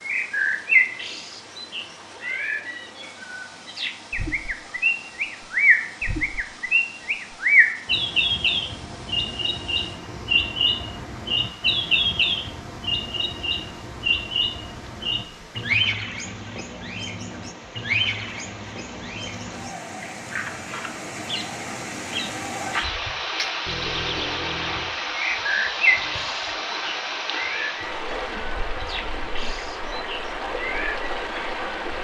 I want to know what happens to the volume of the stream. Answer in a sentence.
The volume of the stream goes up.